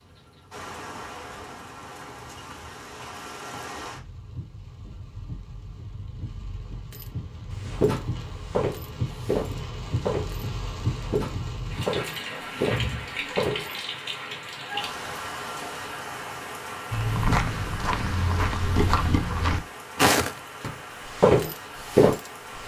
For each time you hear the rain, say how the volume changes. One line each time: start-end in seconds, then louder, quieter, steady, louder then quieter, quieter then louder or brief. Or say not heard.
0.0-22.6 louder then quieter.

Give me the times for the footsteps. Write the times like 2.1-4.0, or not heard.
6.9-13.8, 16.9-22.6.